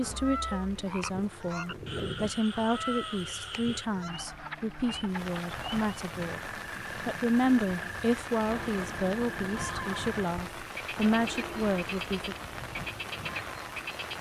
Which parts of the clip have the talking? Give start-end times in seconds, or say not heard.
0.0-12.3.